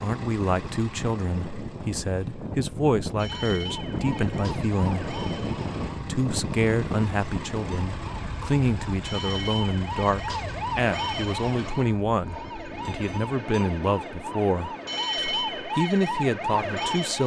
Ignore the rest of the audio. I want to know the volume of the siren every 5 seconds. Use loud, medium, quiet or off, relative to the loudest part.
medium, medium, medium, loud.